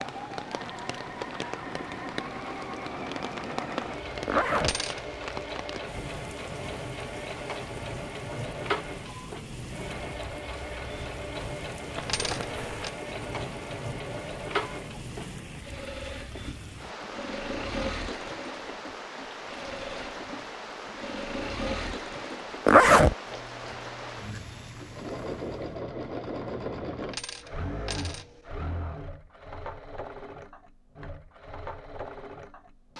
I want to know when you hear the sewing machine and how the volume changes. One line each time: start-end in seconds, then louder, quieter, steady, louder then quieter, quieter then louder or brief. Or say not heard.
0.0-32.9 steady.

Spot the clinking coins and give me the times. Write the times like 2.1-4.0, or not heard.
4.6-5.2, 12.1-12.9, 27.1-28.6.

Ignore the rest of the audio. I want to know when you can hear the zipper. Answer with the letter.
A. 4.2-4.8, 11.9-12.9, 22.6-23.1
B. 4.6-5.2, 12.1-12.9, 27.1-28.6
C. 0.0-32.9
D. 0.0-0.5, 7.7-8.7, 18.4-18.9
A.